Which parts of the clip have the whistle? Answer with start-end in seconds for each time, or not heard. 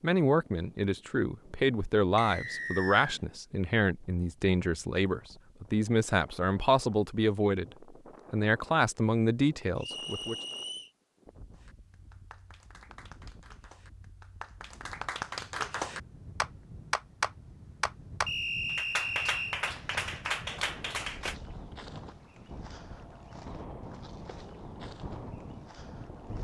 2.1-3.2, 9.8-10.9, 18.2-19.6.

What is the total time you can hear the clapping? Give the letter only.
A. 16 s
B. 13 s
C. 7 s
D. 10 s
D.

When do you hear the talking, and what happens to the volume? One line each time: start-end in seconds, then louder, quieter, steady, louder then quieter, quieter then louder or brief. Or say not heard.
0.0-10.3 steady.